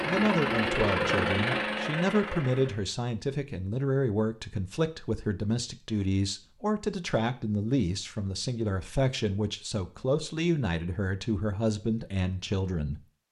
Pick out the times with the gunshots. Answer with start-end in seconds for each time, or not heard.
not heard.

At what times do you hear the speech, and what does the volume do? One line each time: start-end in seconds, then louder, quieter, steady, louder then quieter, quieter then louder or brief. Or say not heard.
0.0-13.0 steady.